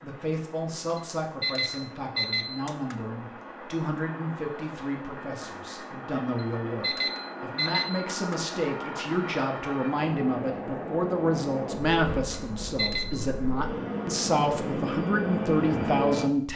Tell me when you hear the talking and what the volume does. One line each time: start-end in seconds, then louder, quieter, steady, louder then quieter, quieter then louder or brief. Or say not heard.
0.0-16.5 louder.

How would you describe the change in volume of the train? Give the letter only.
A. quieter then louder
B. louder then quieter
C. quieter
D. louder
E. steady
D.